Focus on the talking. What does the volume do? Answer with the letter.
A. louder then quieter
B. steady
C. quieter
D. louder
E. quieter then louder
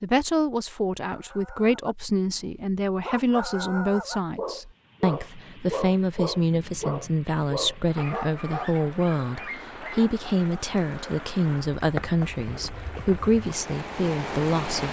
B.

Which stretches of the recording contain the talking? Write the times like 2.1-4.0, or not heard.
0.0-14.8.